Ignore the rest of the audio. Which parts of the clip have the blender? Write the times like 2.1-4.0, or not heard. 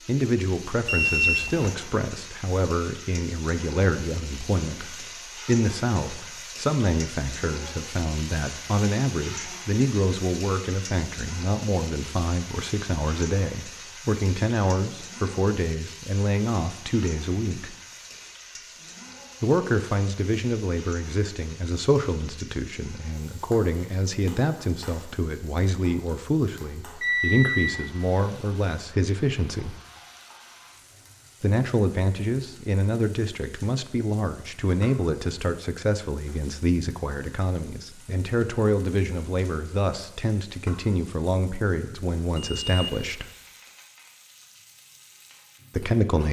not heard.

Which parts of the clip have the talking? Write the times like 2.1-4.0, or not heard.
0.1-17.8, 19.4-29.8, 31.4-43.2, 45.8-46.2.